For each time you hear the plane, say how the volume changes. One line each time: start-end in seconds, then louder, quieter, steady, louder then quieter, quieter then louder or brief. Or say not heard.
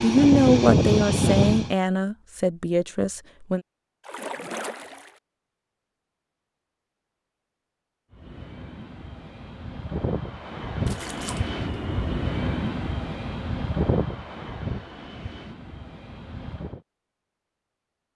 0.0-1.7 brief
8.1-16.8 louder then quieter.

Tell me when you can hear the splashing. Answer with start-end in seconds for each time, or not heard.
4.0-5.2, 10.8-11.4.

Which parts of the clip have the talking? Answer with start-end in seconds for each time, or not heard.
0.0-3.6.